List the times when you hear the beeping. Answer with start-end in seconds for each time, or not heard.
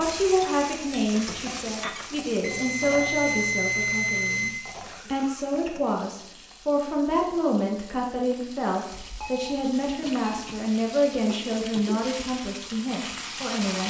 2.4-4.5, 8.9-10.6.